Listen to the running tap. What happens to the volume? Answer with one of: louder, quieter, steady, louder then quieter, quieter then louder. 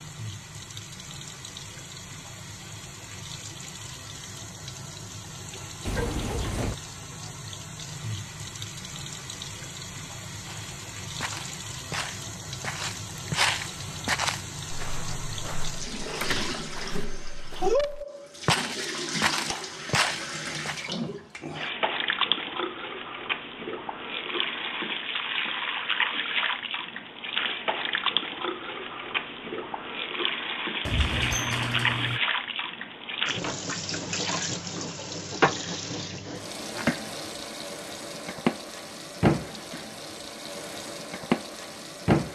louder.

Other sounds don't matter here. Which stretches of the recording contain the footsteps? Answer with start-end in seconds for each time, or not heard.
10.4-20.9.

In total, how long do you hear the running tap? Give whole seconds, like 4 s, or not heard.
42 s.